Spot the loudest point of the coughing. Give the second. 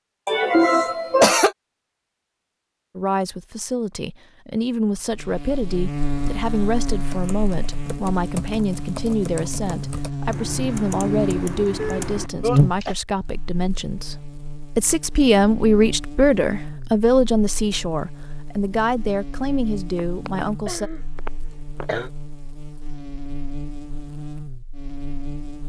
1 s.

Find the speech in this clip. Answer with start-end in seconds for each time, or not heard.
3.0-20.9.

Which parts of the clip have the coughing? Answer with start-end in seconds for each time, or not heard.
0.2-1.6, 11.8-12.9, 19.9-22.1.